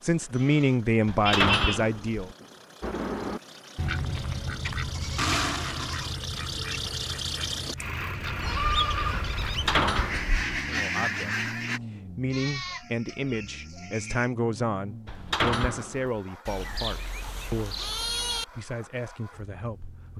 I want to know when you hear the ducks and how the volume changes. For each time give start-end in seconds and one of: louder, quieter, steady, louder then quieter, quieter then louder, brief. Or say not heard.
2.8-11.8 quieter then louder.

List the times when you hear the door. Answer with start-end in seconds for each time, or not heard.
1.1-2.2, 9.4-10.4, 15.1-16.1.